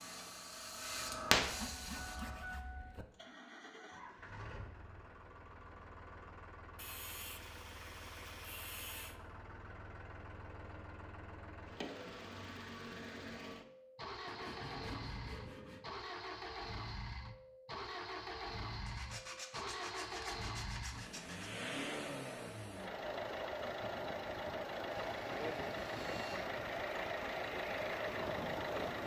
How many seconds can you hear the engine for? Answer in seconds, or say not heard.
29 s.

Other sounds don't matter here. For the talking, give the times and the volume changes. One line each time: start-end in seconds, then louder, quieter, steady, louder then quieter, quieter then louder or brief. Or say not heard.
not heard.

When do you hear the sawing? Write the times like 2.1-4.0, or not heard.
1.4-3.0, 6.8-9.2, 14.2-15.8, 18.9-21.5, 25.1-26.4.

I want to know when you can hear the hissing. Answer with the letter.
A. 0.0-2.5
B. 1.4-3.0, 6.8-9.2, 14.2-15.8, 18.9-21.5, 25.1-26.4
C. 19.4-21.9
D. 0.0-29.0
A.